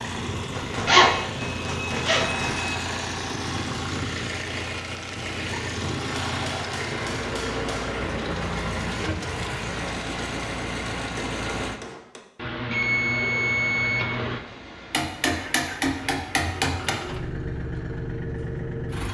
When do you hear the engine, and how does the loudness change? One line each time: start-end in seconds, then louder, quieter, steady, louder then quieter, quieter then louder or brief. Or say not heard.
0.0-11.8 steady
14.2-19.1 louder.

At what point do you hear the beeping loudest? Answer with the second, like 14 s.
1 s.